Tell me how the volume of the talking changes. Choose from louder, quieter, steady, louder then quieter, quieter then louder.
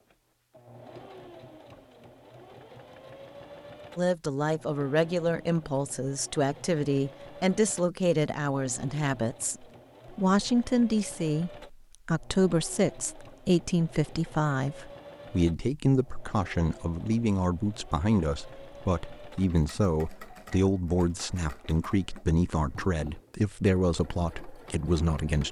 steady.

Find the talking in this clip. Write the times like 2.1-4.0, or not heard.
4.0-25.4.